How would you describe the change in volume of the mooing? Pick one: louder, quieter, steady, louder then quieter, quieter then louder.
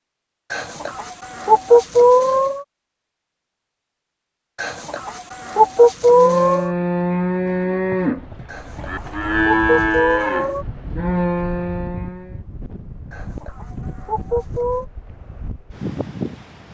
steady.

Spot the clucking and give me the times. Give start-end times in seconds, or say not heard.
0.5-2.6, 4.5-6.7, 8.4-10.7, 13.1-14.8.